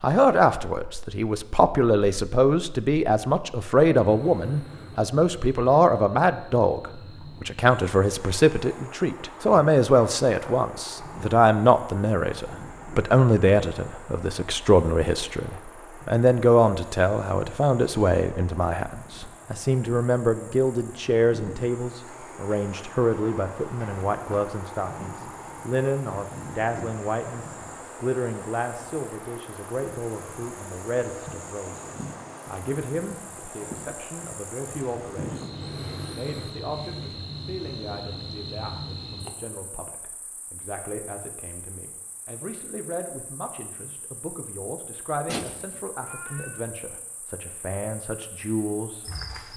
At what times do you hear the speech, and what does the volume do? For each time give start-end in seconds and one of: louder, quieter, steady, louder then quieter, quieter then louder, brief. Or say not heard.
0.0-49.2 quieter.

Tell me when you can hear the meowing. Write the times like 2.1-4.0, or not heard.
45.2-46.6.